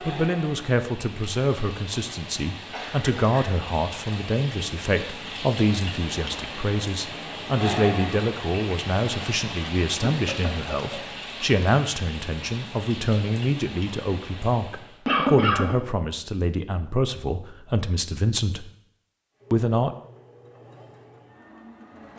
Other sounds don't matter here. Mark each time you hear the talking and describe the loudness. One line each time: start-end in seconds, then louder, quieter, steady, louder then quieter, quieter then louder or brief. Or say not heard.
0.0-18.7 steady
19.5-19.9 brief.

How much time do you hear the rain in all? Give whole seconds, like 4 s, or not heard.
15 s.